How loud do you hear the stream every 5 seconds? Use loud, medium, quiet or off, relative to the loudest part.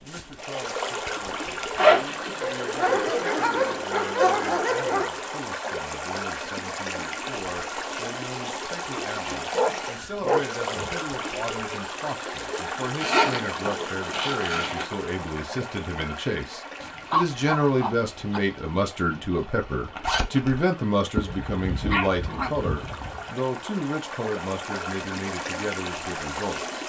loud, loud, loud, medium, medium, loud.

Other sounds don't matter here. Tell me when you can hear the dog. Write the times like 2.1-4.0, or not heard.
2.4-5.1, 9.5-10.9, 16.8-18.4, 21.1-23.2.